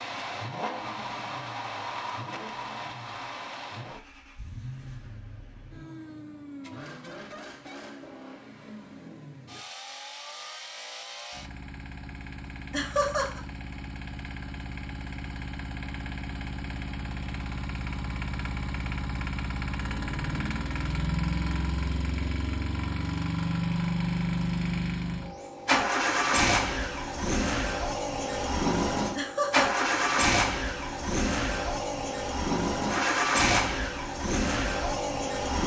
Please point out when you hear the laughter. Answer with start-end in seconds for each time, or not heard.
12.7-13.4, 29.1-29.8.